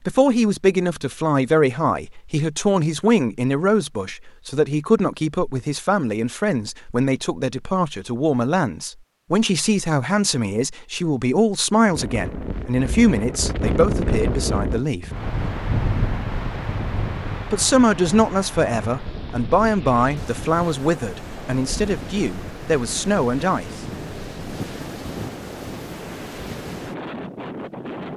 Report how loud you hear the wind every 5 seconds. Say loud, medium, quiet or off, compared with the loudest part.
off, off, loud, loud, medium, medium.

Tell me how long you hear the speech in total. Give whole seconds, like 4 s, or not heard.
21 s.